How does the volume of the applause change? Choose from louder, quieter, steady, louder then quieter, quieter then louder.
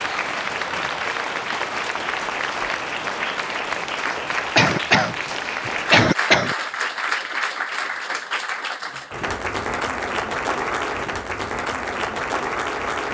steady.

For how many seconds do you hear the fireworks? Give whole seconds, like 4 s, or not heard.
not heard.